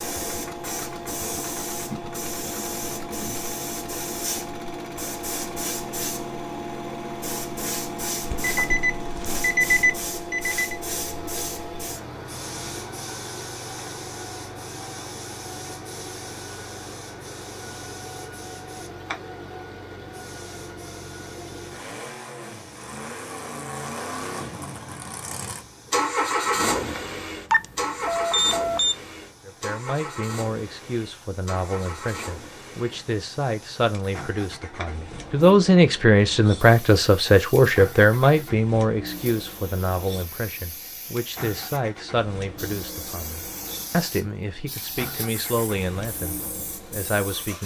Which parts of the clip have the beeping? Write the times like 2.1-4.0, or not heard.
8.2-10.8, 27.5-28.9.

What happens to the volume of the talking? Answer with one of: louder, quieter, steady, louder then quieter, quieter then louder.
louder then quieter.